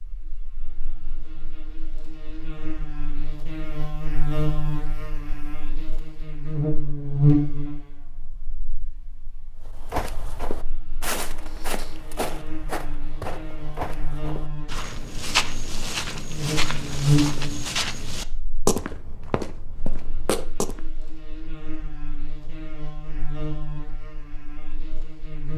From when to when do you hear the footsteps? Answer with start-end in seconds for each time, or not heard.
9.7-20.8.